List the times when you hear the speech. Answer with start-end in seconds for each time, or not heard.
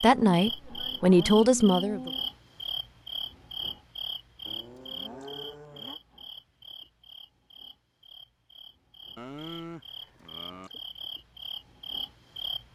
0.0-2.1.